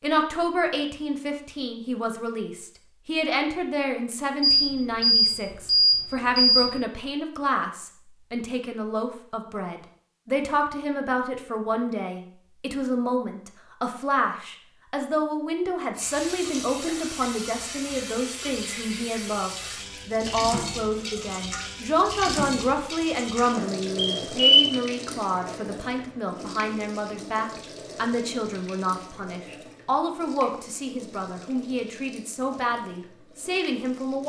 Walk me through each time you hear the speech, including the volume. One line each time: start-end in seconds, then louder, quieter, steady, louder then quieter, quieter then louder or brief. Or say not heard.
0.0-34.2 steady.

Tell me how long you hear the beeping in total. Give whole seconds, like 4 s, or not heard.
3 s.